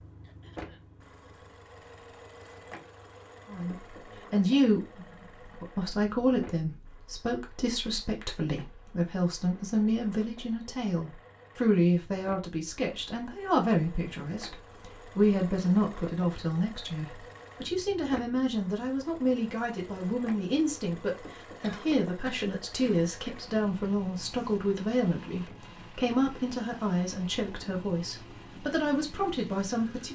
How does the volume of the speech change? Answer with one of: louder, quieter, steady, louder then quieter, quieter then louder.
steady.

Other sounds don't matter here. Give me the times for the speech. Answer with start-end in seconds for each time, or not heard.
3.5-30.1.